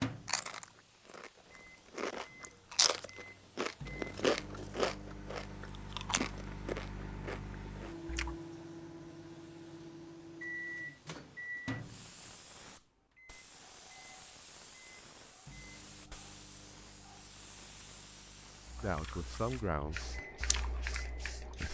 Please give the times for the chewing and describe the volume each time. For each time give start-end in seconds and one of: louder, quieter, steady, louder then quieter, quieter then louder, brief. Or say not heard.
0.2-8.3 louder then quieter
18.6-21.6 brief.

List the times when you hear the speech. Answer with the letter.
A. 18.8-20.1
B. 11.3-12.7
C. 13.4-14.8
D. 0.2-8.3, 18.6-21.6
A.